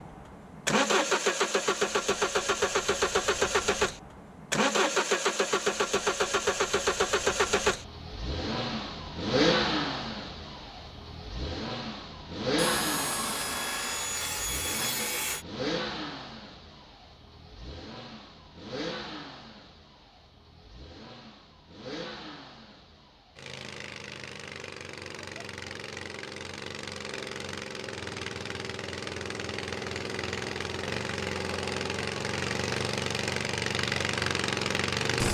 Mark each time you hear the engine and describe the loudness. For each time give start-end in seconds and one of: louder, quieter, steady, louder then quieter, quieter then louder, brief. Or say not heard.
0.0-35.3 quieter then louder.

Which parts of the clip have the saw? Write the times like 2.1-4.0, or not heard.
12.6-15.4.